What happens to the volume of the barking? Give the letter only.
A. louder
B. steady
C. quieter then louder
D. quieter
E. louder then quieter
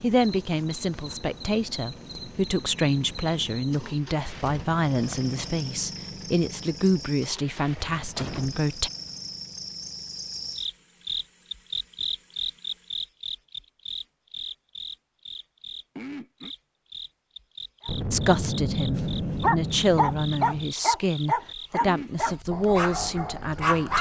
D.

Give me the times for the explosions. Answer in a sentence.
The explosions can be heard from 8.2 to 8.8 s and from 17.9 to 20.7 s.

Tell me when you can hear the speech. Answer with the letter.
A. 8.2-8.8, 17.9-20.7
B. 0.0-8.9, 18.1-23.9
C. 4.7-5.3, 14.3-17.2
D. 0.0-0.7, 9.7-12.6
B.